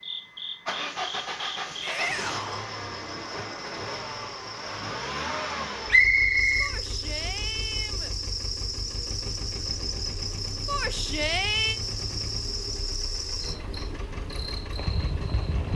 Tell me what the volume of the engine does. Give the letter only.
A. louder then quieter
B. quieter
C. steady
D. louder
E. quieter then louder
B.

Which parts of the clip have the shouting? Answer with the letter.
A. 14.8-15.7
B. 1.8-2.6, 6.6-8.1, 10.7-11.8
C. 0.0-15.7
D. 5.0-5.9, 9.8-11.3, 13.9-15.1
B.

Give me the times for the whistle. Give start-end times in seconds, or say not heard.
5.9-6.8.